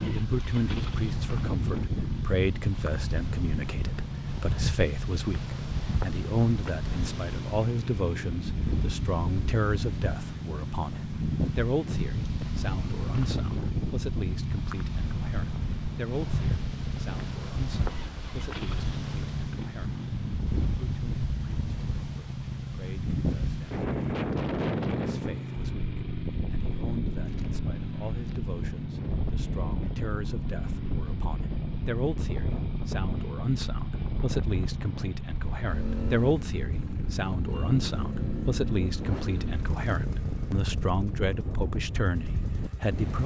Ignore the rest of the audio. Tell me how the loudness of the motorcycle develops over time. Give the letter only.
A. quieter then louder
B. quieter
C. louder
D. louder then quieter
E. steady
E.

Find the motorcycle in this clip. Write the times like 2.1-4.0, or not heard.
0.0-43.1.